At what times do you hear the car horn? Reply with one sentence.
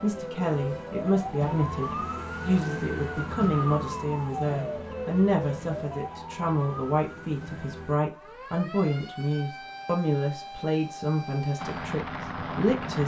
The car horn can't be heard in this clip.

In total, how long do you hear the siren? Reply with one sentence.
You can hear the siren for 13 seconds altogether.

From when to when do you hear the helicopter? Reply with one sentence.
You can hear the helicopter from 11.6 to 13.0 s.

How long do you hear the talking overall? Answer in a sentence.
You can hear the talking for 13 seconds altogether.